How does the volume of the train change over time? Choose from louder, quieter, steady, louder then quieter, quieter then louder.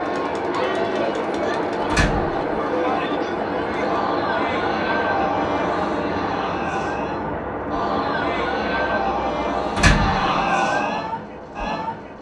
quieter.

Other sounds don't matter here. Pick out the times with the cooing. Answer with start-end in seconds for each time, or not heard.
not heard.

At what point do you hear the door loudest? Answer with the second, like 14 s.
10 s.